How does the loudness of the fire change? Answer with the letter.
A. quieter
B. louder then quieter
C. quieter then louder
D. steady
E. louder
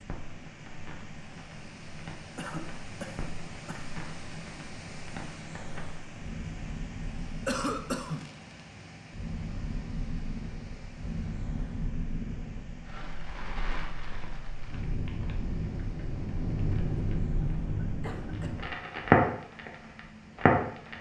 E.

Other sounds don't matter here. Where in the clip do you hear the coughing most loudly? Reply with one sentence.
The loudest moment of the coughing is at 8 seconds.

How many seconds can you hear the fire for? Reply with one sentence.
You can hear the fire for 21 seconds altogether.